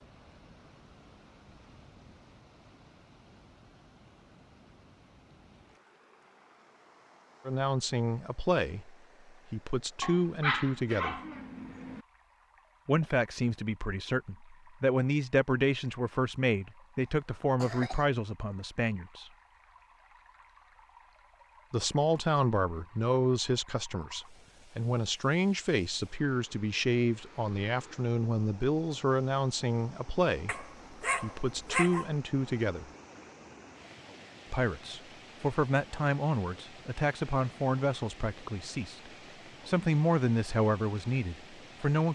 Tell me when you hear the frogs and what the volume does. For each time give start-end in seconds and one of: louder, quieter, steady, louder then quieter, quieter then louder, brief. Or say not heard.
not heard.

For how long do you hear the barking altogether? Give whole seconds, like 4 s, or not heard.
4 s.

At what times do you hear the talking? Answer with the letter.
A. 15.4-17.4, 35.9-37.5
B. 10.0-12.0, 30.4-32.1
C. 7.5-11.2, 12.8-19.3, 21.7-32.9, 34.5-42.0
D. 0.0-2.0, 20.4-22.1
C.